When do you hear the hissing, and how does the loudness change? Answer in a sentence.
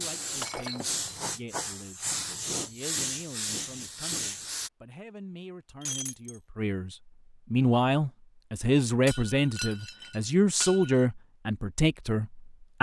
The hissing can be heard from 0.0 to 4.7 s, at a steady volume.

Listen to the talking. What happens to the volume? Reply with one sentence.
The volume of the talking goes up.